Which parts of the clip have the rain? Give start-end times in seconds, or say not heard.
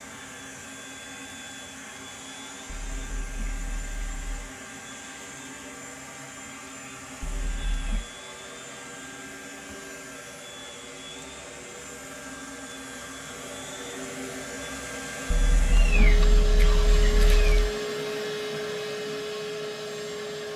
not heard.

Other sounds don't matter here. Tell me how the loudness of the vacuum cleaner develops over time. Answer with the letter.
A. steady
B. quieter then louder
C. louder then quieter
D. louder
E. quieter
D.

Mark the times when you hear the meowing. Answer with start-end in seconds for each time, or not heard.
2.6-4.2, 7.2-8.1, 15.3-17.7.